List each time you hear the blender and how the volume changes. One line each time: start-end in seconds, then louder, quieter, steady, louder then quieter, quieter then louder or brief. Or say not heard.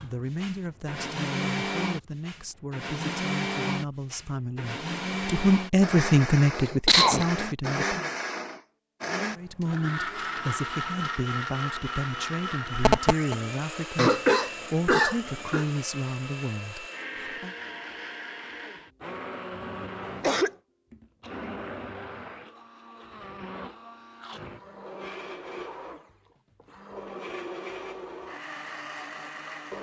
0.0-29.7 quieter.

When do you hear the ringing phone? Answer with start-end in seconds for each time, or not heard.
12.7-13.3.